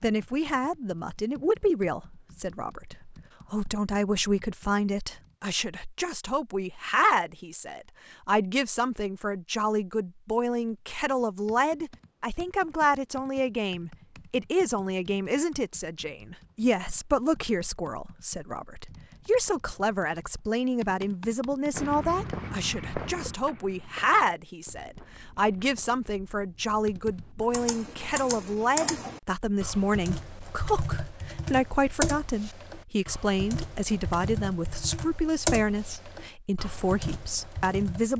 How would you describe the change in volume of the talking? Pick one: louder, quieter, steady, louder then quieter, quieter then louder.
steady.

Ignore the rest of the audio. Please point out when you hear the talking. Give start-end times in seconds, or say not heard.
0.0-38.1.